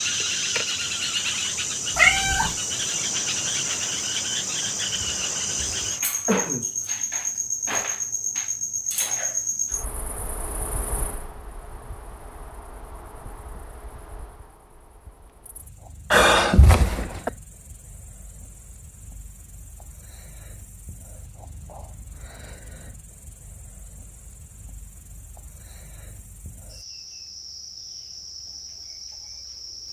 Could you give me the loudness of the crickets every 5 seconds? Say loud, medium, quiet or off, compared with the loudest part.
loud, loud, quiet, quiet, quiet, quiet.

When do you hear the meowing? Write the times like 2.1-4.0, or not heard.
1.9-2.5.